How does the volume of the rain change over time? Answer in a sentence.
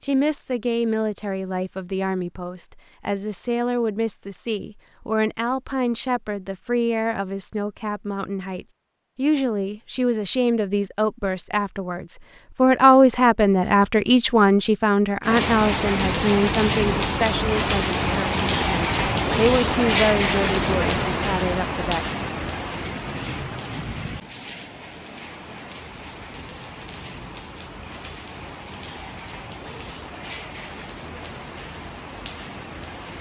The loudness of the rain goes down.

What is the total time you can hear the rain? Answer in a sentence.
The rain can be heard for 18 seconds in total.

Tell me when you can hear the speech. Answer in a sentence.
The speech can be heard from 0.0 to 22.1 s.